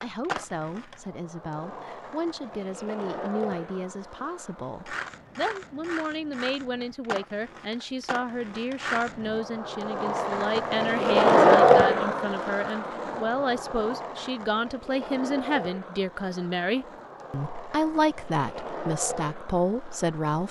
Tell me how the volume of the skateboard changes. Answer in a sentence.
The loudness of the skateboard goes up, then down.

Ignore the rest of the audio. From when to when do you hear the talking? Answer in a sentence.
You can hear the talking from 0.0 to 20.4 s.